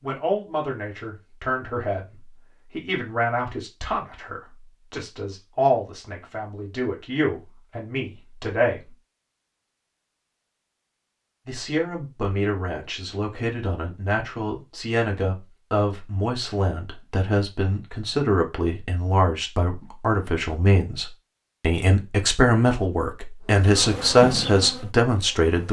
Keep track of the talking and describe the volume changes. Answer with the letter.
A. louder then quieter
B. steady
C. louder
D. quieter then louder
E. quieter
C.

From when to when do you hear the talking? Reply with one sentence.
You can hear the talking from 0.0 to 8.9 s and from 11.4 to 25.6 s.